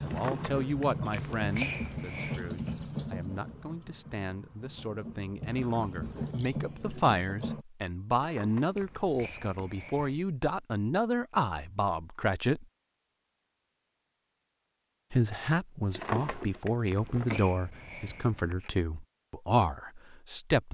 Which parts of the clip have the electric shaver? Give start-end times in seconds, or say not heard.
not heard.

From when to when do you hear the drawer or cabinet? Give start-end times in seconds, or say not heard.
0.1-0.8, 8.2-9.6, 15.9-17.4.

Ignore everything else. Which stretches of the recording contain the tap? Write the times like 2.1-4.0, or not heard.
0.0-7.7.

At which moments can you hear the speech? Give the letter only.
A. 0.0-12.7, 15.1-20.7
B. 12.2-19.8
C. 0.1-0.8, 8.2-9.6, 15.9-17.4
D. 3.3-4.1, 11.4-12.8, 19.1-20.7
A.